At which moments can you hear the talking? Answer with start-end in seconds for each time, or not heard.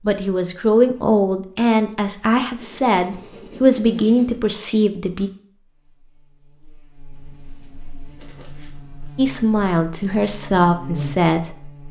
0.0-5.3, 9.2-11.8.